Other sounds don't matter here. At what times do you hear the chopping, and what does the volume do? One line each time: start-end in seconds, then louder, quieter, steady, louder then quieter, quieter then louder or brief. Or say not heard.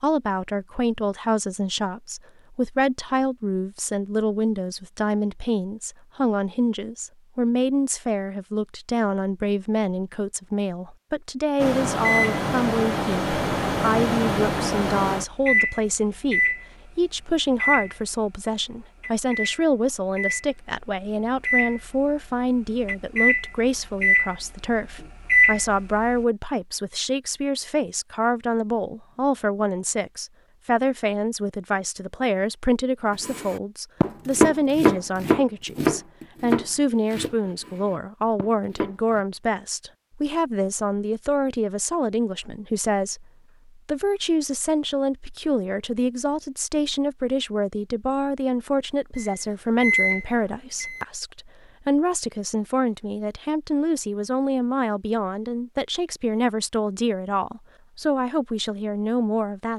33.2-39.2 quieter.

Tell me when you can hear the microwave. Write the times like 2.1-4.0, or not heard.
11.6-26.2, 49.1-51.0.